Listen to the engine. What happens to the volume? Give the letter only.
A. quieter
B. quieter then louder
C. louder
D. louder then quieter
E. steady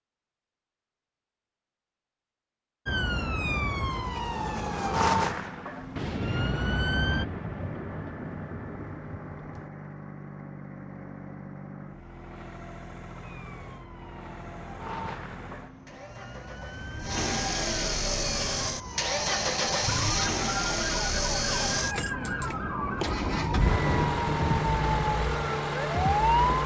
C.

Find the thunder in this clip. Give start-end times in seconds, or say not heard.
6.0-9.7, 21.8-24.6.